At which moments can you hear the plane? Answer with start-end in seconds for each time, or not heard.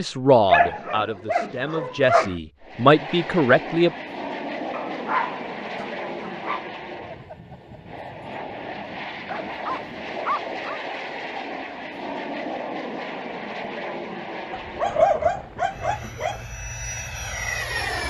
2.6-18.0.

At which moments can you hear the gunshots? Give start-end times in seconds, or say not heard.
not heard.